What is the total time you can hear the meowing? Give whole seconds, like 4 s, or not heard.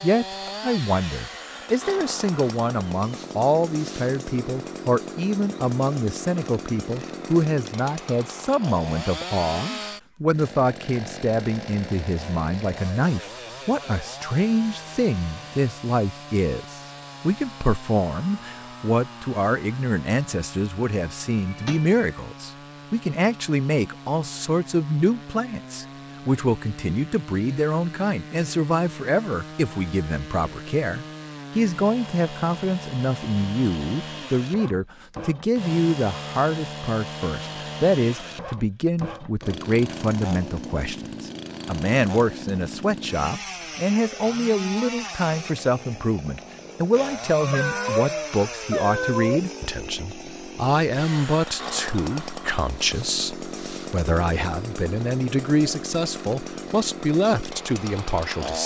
3 s.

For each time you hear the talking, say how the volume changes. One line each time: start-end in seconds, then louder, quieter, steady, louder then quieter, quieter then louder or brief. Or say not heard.
0.0-58.6 steady.